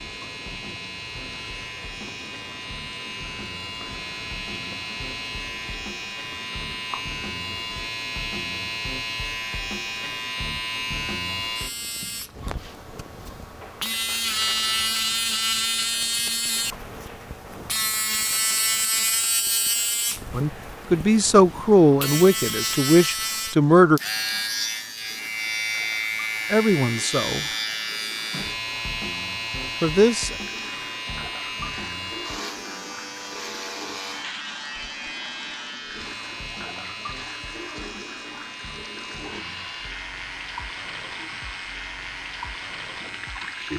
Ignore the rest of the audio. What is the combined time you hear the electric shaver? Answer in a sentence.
You can hear the electric shaver for 44 seconds altogether.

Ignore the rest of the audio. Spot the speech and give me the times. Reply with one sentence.
The speech can be heard from 20.4 to 24.0 s, from 26.5 to 27.4 s and from 29.8 to 30.4 s.